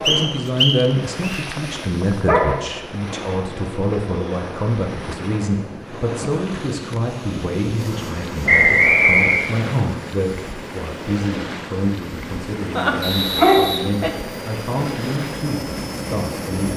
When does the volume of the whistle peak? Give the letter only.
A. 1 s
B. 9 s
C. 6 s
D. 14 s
B.